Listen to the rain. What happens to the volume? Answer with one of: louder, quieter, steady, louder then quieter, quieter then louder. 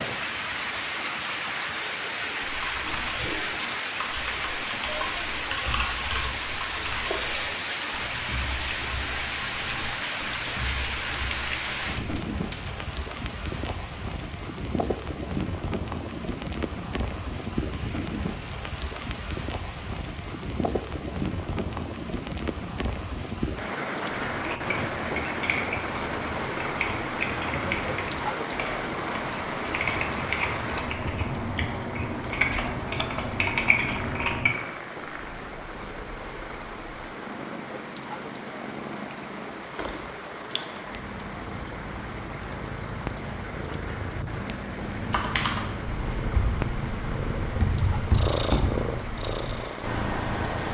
quieter.